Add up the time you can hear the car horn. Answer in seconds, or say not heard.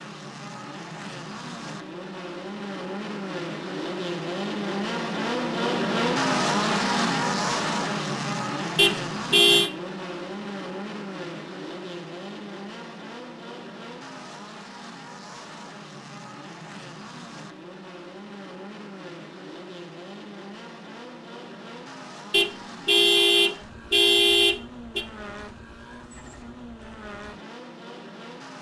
4 s.